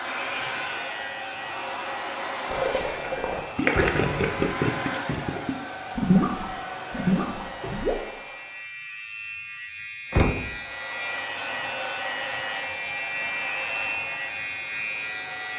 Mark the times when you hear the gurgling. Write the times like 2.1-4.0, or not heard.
2.5-8.0.